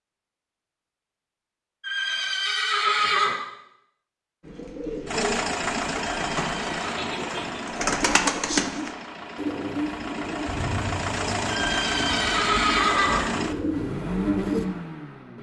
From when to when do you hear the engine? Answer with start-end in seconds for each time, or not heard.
5.0-15.3.